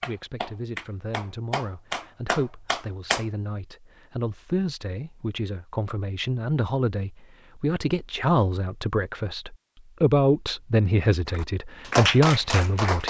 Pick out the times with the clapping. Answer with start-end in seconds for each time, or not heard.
0.0-3.2, 11.2-13.0.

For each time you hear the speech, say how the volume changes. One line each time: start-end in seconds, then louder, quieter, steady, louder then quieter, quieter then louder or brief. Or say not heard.
0.0-13.0 louder.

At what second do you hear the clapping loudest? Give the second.
12 s.